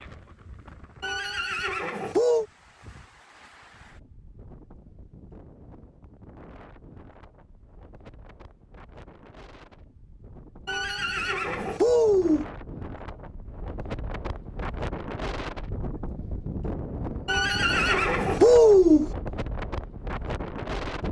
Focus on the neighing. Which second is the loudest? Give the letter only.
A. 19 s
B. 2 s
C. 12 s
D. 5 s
A.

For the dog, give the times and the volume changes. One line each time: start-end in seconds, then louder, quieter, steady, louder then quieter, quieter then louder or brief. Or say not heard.
not heard.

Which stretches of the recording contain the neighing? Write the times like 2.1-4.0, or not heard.
1.0-2.5, 10.7-12.4, 17.2-19.1.